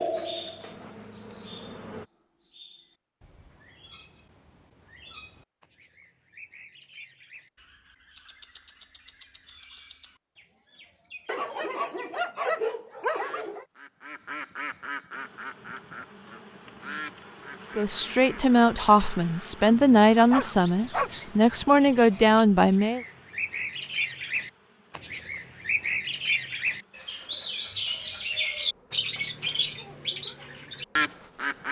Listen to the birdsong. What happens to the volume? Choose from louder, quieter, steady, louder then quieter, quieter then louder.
quieter then louder.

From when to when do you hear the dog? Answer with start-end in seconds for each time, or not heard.
11.2-13.7, 19.7-21.2.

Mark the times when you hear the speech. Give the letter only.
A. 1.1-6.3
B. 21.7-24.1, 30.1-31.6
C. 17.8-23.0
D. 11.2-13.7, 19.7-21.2
C.